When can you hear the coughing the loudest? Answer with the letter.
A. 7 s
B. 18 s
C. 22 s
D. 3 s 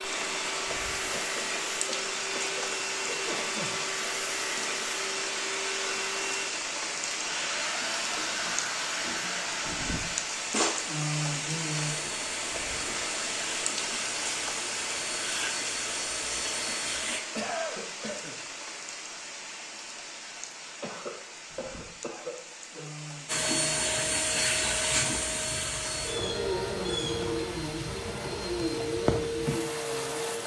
B.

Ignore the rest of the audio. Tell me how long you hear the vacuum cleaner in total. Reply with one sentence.
The vacuum cleaner can be heard for 24 seconds in total.